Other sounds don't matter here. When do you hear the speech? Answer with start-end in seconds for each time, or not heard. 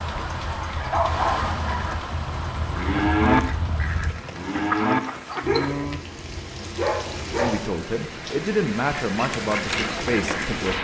7.3-10.7.